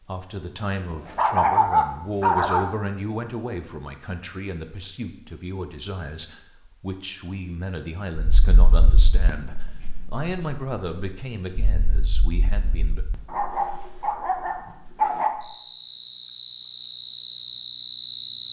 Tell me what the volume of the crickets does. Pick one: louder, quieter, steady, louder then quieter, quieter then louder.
quieter then louder.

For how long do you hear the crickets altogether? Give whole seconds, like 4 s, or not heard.
10 s.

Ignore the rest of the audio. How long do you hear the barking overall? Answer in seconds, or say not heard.
4 s.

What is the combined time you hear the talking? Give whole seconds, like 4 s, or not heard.
13 s.